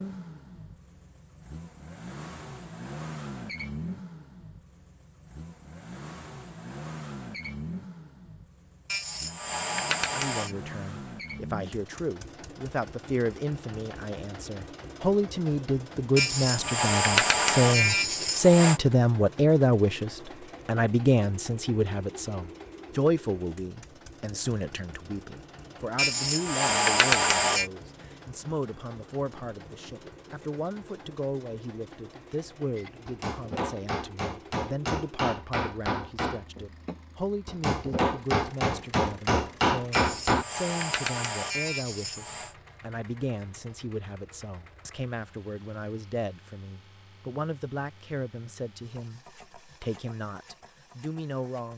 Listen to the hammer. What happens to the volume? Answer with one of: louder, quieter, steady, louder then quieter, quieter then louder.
louder.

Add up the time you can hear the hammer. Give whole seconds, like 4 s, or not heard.
8 s.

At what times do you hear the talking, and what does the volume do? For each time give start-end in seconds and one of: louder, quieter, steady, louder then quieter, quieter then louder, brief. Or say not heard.
10.1-51.7 quieter.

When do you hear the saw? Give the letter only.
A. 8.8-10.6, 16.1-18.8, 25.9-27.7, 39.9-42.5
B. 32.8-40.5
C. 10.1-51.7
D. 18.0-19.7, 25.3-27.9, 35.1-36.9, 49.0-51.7
A.